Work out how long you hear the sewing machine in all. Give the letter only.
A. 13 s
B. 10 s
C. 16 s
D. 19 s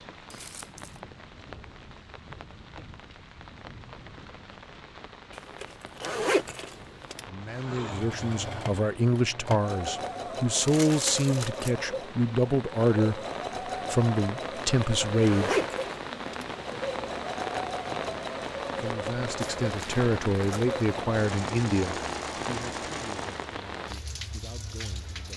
C.